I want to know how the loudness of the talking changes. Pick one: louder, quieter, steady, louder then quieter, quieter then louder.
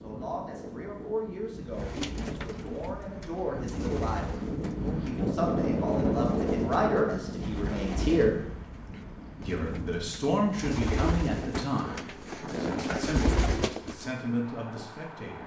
louder then quieter.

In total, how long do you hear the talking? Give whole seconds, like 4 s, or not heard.
14 s.